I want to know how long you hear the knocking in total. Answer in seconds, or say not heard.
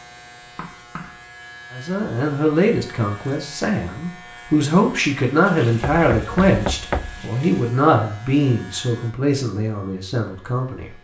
2 s.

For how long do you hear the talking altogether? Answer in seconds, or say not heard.
9 s.